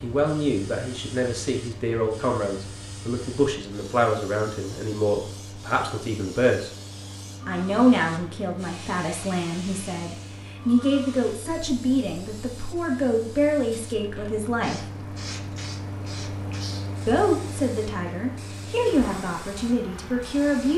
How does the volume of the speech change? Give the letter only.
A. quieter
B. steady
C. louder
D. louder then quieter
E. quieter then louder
B.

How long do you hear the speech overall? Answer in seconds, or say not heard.
18 s.